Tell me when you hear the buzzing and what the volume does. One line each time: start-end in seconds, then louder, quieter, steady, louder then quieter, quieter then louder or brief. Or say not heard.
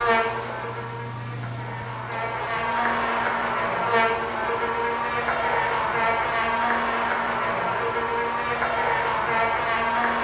0.0-10.1 louder.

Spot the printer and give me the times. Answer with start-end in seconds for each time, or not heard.
0.0-3.1.